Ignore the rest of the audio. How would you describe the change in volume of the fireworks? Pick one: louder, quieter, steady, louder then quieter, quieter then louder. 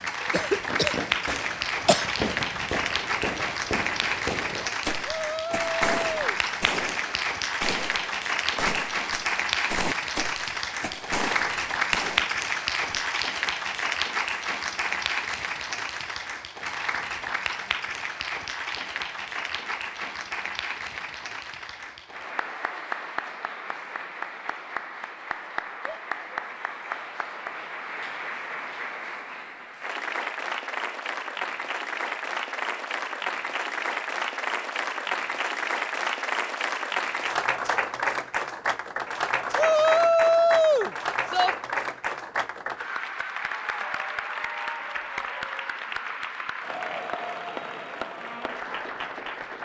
steady.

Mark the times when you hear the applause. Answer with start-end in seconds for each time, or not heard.
0.0-49.6.